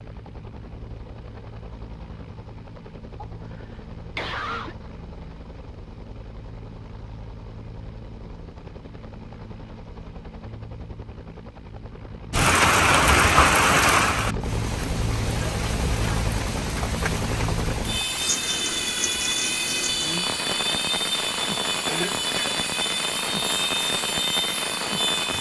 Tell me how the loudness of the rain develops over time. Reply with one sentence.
The volume of the rain goes down.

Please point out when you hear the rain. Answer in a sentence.
You can hear the rain from 12.3 to 25.3 s.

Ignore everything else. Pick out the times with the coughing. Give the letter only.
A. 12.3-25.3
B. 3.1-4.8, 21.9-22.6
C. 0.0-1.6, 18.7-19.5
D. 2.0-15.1
B.